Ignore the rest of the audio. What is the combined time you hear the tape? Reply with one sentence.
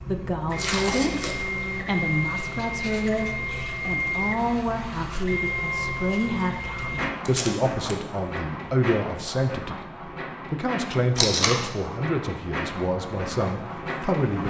The tape can be heard for 2 seconds in total.